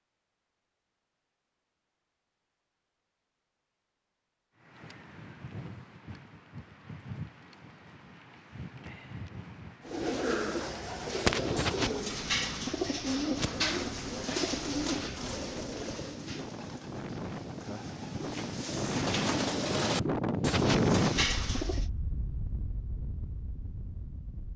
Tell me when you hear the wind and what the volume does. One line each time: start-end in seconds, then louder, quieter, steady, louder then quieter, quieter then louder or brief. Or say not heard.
4.5-24.5 louder.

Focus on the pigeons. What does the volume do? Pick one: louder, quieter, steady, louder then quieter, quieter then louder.
quieter then louder.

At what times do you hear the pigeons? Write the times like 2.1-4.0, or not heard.
9.8-21.9.